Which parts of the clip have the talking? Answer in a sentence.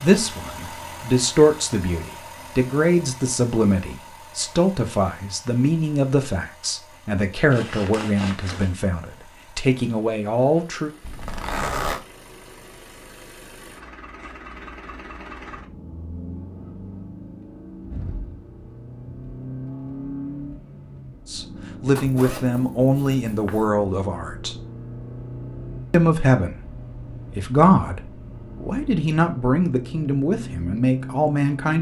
The talking can be heard from 0.0 to 10.9 s, from 21.3 to 24.6 s, from 25.9 to 26.6 s, from 27.4 to 28.0 s and from 28.6 to 31.7 s.